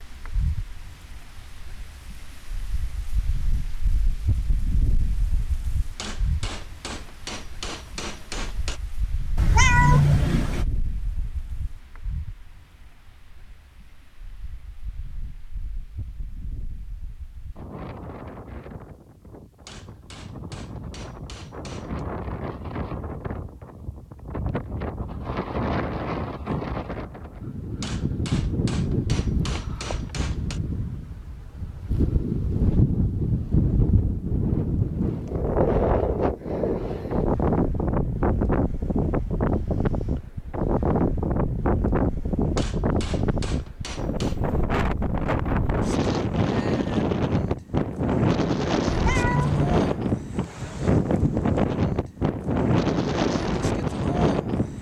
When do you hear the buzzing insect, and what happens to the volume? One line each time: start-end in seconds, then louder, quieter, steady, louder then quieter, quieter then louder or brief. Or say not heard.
not heard.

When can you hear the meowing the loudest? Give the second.
10 s.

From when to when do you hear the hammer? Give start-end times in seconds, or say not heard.
6.0-8.8, 19.6-22.1, 27.8-30.6, 42.5-44.4.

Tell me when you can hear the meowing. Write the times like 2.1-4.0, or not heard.
9.3-10.7, 48.9-50.0.